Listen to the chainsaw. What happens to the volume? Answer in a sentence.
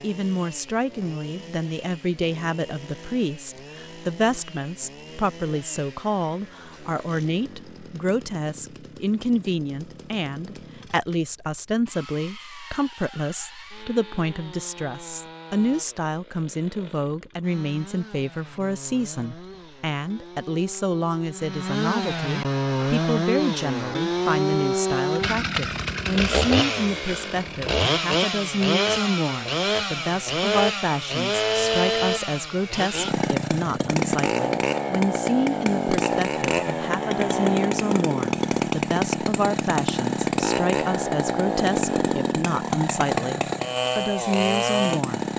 The volume of the chainsaw goes up.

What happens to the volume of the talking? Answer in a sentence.
The loudness of the talking stays about the same.